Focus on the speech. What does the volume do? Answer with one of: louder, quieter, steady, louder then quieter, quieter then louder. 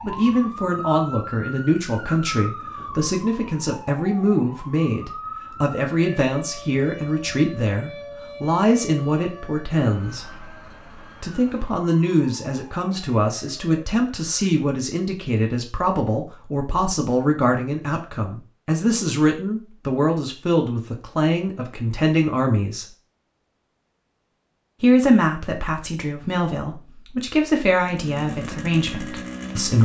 steady.